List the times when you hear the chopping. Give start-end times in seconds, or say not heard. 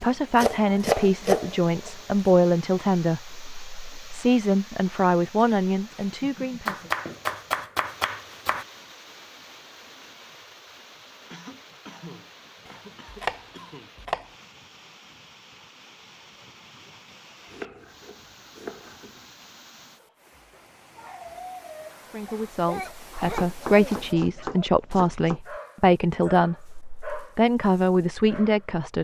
0.0-1.9, 6.7-8.7, 12.7-14.3, 17.4-19.2, 23.3-25.4.